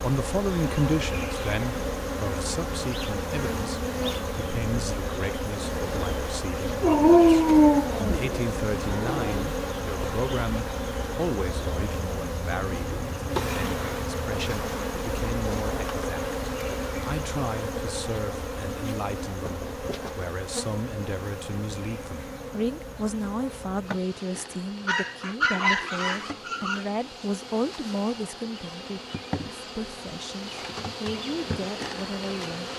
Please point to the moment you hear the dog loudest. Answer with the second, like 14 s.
7 s.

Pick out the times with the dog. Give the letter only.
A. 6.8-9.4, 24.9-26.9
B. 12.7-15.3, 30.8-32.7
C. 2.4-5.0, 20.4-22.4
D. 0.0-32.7
A.